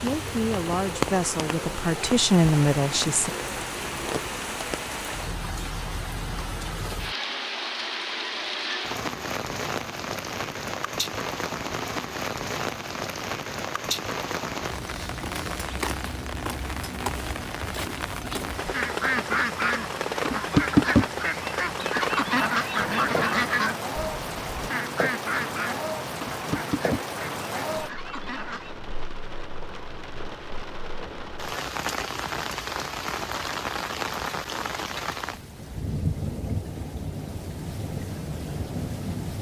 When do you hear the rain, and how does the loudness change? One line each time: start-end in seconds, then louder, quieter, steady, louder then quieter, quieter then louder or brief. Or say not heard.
0.0-39.3 steady.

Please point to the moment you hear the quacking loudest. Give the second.
21 s.